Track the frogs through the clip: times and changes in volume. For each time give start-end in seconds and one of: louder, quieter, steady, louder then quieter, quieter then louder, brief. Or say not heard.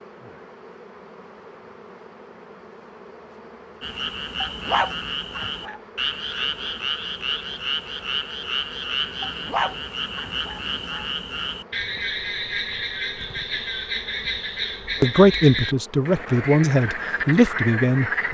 3.8-18.2 steady.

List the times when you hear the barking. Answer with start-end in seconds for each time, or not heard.
4.4-5.8, 9.2-11.1.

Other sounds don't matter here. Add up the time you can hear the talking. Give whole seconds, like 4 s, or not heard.
3 s.